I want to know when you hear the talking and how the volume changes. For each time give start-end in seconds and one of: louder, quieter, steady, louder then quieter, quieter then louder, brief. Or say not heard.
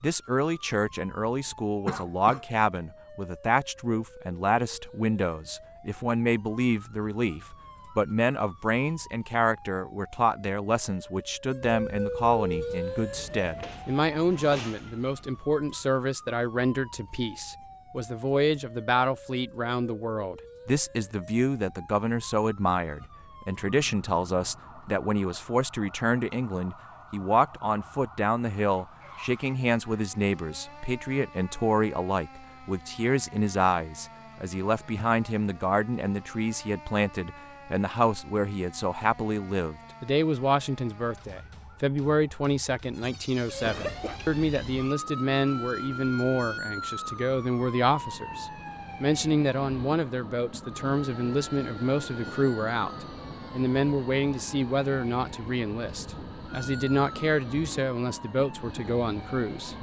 0.0-59.7 steady.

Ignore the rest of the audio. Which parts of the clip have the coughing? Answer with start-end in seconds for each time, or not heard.
1.9-2.5, 43.0-44.2.